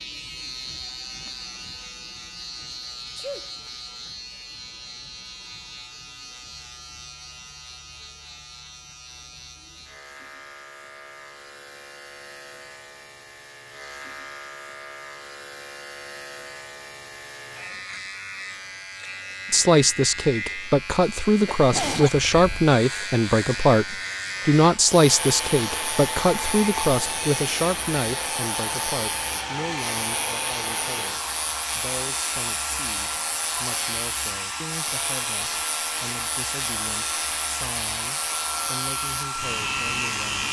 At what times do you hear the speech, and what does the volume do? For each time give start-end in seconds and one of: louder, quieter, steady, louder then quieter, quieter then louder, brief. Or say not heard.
19.5-40.4 quieter.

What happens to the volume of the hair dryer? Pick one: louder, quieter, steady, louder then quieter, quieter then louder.
steady.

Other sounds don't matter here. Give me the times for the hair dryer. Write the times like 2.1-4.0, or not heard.
24.7-40.4.